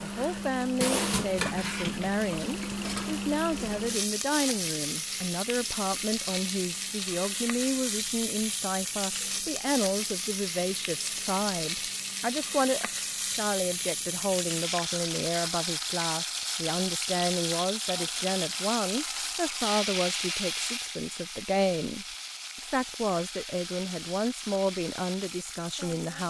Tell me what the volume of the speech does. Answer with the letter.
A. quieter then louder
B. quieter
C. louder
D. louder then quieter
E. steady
E.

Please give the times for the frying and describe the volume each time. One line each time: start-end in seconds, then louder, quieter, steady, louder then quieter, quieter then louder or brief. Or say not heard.
0.0-26.2 quieter.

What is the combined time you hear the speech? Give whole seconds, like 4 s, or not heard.
26 s.